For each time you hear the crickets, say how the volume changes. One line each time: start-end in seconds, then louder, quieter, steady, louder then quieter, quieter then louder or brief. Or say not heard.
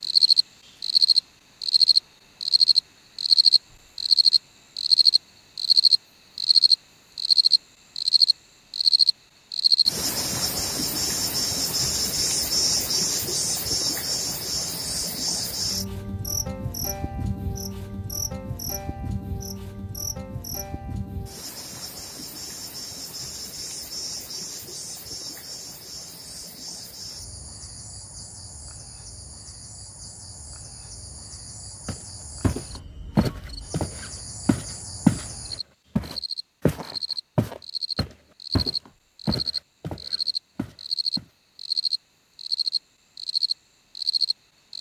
0.0-44.7 quieter then louder.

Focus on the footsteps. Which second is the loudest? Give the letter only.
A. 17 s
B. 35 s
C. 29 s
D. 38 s
B.